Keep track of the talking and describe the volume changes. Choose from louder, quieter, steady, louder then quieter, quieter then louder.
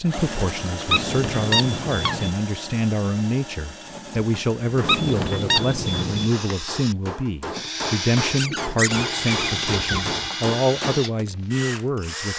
steady.